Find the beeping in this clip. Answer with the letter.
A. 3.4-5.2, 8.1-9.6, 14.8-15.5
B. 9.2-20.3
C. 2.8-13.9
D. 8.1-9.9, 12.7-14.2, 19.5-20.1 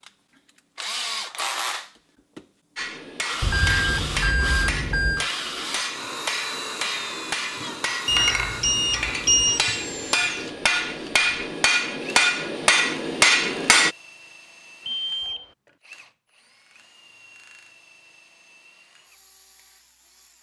A.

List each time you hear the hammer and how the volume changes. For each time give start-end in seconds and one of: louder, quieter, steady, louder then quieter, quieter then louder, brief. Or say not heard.
2.8-13.9 louder.